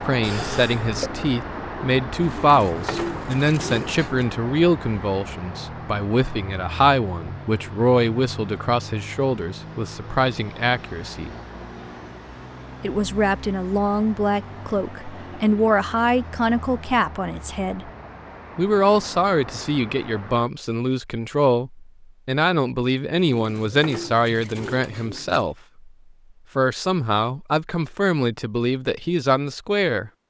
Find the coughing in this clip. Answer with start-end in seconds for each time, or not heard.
0.2-1.2.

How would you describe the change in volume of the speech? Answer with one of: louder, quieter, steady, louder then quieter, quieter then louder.
steady.